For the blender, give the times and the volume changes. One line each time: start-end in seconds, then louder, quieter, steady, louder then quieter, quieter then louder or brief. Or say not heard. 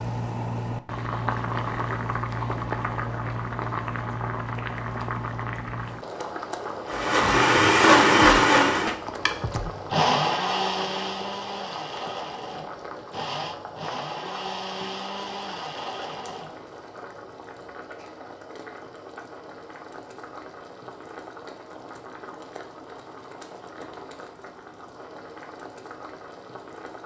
6.8-16.6 quieter.